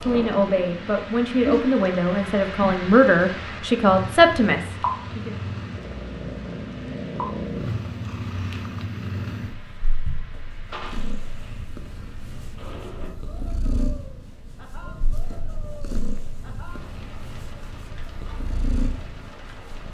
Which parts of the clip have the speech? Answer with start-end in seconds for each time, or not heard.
0.0-5.3.